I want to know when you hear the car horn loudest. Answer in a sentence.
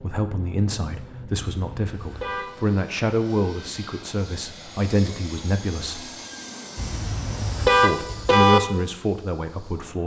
The loudest moment of the car horn is at 8 seconds.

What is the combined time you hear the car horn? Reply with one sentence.
You can hear the car horn for 3 seconds altogether.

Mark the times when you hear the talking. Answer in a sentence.
You can hear the talking from 0.0 to 6.1 s and from 7.7 to 10.0 s.